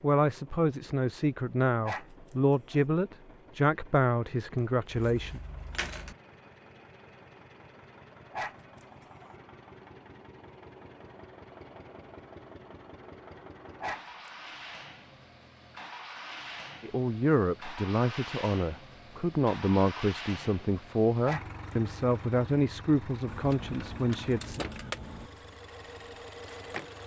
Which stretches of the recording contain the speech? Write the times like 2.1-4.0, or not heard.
0.0-5.4, 16.8-24.6.